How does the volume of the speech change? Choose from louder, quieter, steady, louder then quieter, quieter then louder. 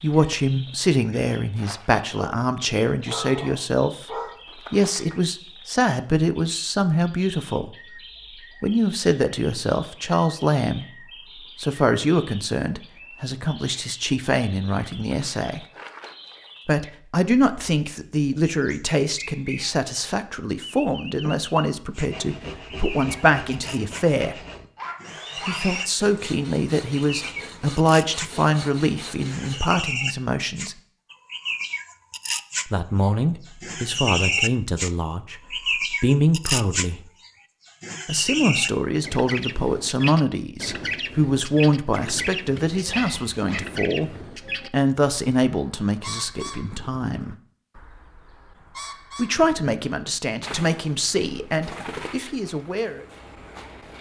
steady.